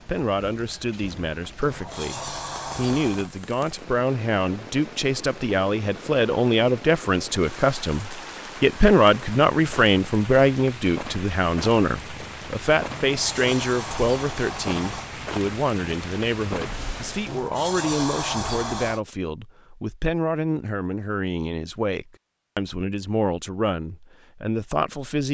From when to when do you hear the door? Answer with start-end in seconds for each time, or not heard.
1.6-3.3, 13.0-15.1, 17.2-19.0.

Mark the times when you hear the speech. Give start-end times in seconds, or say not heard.
0.1-25.3.